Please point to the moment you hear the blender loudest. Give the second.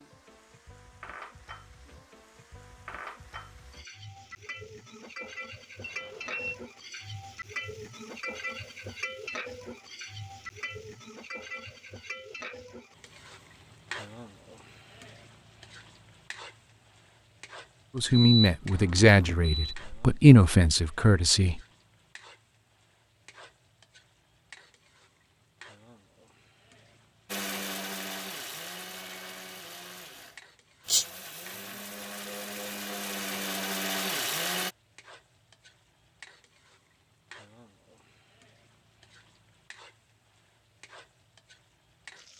34 s.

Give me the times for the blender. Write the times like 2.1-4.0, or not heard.
27.2-34.8.